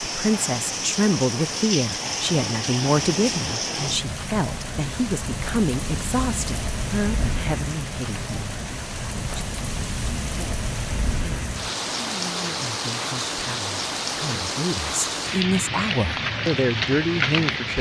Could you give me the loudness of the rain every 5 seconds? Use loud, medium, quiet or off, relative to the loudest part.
loud, medium, loud, loud.